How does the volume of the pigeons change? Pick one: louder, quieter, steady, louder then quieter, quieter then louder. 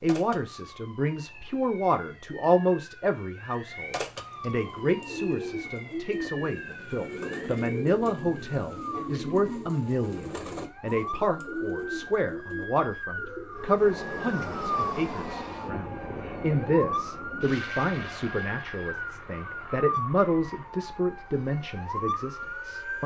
steady.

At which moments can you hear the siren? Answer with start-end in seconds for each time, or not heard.
0.0-23.0.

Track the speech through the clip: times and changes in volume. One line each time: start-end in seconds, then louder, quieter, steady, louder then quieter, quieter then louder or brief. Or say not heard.
0.0-23.0 steady.